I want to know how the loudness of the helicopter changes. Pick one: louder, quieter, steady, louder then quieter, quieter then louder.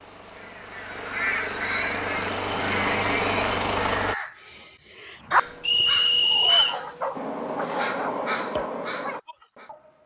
louder.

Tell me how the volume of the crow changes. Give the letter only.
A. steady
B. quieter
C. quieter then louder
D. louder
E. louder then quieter
C.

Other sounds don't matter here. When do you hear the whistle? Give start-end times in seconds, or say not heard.
5.6-6.8.